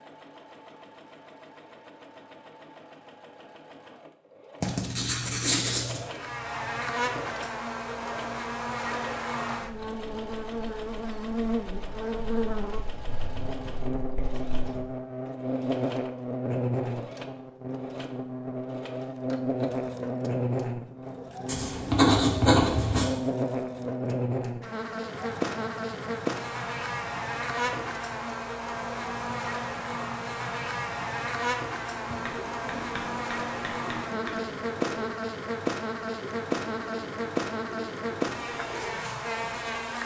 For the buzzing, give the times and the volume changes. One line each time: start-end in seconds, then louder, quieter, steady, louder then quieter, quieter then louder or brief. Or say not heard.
6.0-40.0 steady.